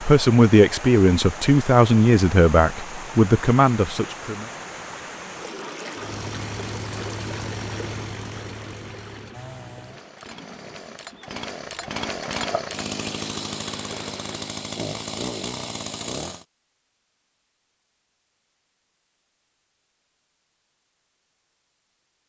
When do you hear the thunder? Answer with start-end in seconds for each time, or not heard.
not heard.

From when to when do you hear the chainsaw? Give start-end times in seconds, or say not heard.
6.0-16.4.